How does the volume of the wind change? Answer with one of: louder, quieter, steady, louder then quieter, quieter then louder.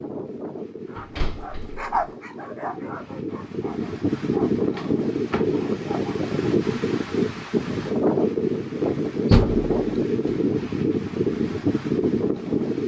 louder.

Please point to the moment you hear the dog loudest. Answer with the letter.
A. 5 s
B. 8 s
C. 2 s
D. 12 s
C.